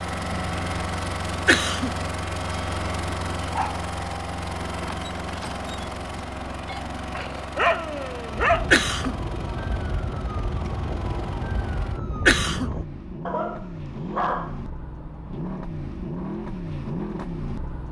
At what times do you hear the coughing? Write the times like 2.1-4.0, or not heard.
1.4-1.9, 8.7-9.2, 12.2-12.7.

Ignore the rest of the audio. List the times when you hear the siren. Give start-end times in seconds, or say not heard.
8.3-12.8.